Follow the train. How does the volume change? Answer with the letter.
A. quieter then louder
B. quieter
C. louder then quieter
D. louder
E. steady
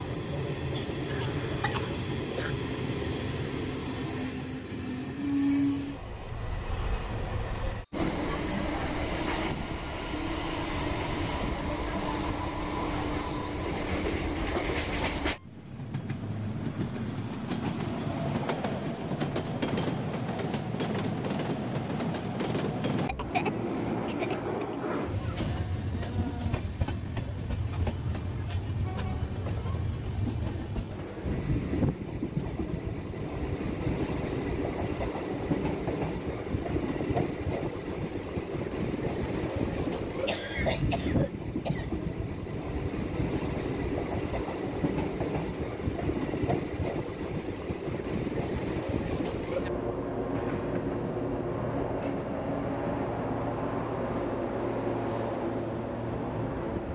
E.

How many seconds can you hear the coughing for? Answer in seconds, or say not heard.
5 s.